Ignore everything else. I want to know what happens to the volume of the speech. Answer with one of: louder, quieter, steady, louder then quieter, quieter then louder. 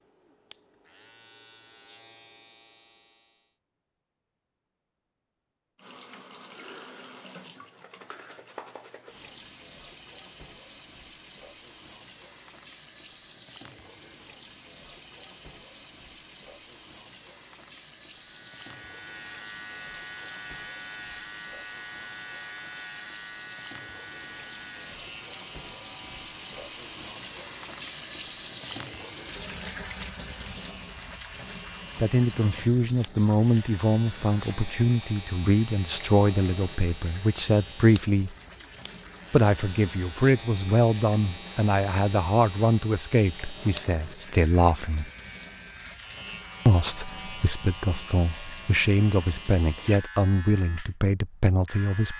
steady.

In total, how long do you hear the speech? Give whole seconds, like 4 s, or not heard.
18 s.